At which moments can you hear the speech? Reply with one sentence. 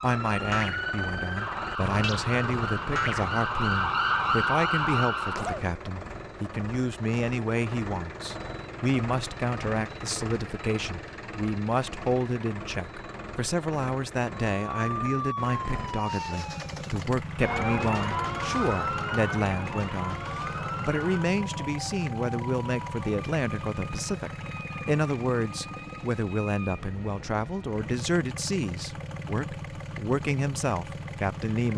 The speech can be heard from 0.0 to 31.7 s.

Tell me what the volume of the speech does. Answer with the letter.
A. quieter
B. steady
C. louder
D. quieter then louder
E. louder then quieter
B.